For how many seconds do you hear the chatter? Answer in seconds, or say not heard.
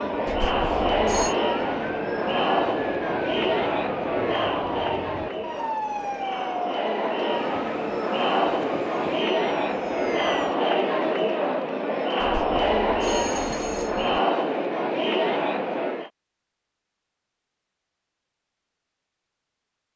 16 s.